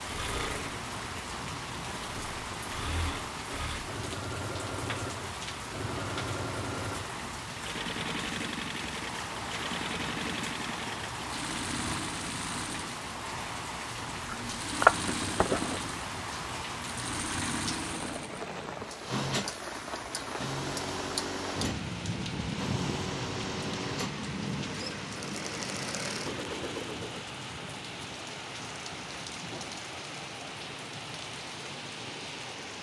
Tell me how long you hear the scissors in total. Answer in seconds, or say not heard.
2 s.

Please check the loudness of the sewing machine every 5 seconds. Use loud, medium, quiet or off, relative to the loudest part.
loud, loud, loud, loud, loud, loud, off.